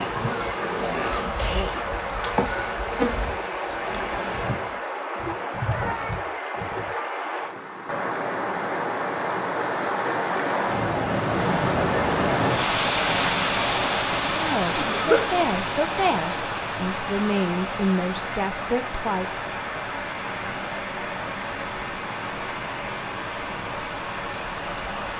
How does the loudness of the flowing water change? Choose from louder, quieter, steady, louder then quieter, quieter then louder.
louder then quieter.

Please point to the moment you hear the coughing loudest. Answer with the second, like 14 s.
15 s.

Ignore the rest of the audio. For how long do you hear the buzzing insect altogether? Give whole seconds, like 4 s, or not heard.
5 s.